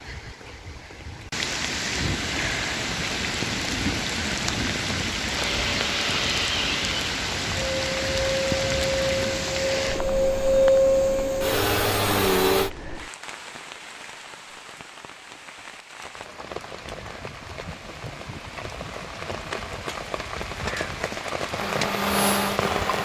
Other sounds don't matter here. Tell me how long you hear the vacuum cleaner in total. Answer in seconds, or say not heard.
9 s.